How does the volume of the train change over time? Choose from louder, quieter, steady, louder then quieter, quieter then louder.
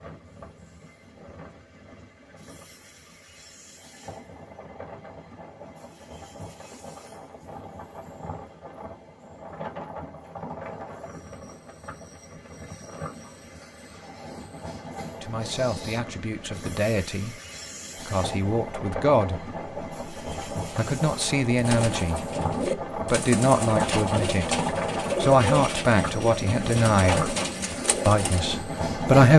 louder.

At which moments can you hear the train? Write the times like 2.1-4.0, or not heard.
0.0-29.3.